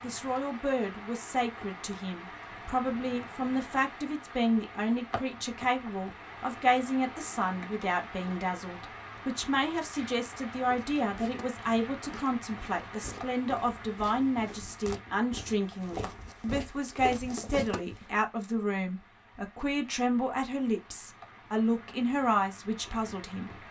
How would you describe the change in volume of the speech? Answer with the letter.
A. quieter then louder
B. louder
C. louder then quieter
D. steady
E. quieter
D.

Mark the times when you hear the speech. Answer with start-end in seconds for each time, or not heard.
0.0-23.6.